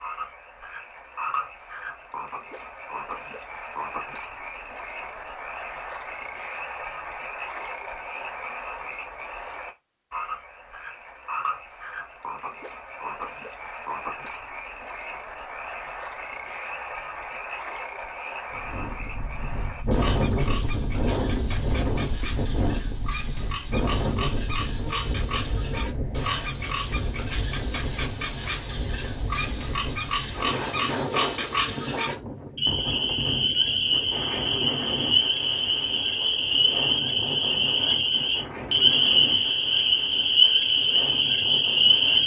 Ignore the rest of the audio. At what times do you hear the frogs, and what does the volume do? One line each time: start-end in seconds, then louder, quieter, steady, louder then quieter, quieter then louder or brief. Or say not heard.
0.0-42.2 louder.